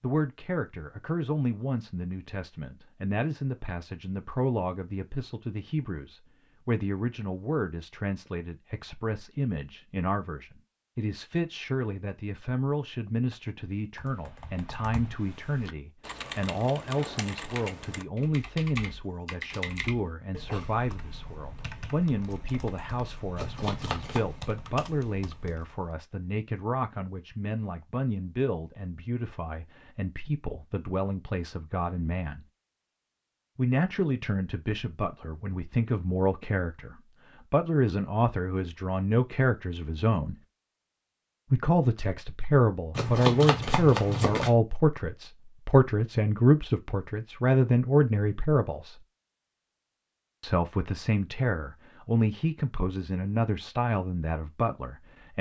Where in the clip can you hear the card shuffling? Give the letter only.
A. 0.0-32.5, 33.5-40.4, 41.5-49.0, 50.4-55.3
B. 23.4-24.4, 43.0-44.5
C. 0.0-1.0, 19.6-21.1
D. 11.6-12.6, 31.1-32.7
B.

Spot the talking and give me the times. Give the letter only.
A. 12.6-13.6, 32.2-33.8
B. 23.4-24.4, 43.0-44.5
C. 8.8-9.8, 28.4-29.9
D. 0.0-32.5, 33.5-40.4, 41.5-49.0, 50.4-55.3
D.